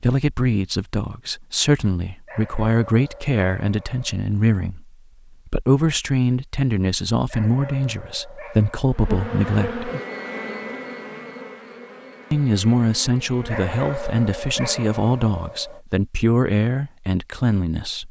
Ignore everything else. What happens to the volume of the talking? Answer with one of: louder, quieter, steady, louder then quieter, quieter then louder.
steady.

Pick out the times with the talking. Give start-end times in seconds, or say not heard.
0.0-9.8, 12.3-18.0.